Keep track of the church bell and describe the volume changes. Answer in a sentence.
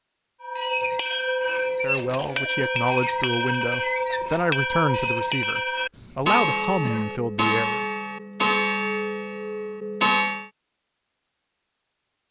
The loudness of the church bell stays about the same.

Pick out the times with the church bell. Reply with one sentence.
The church bell can be heard from 0.4 to 10.5 s.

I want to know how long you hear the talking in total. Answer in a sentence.
You can hear the talking for 6 seconds altogether.